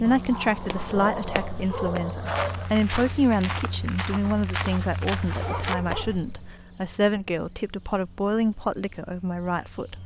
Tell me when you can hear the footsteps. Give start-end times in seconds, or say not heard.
0.5-6.5.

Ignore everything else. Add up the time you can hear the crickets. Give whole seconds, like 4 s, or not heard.
10 s.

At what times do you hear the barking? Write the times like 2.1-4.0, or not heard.
0.0-2.7, 5.4-6.2.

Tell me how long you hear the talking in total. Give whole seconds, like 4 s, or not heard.
10 s.